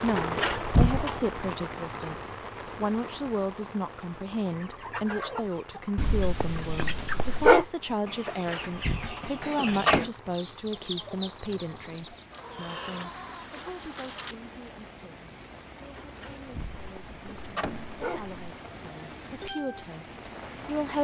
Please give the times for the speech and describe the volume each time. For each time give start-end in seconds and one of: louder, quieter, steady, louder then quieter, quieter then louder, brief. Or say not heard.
0.0-20.9 quieter.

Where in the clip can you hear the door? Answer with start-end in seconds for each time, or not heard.
0.1-1.2, 8.2-10.1, 15.9-18.0.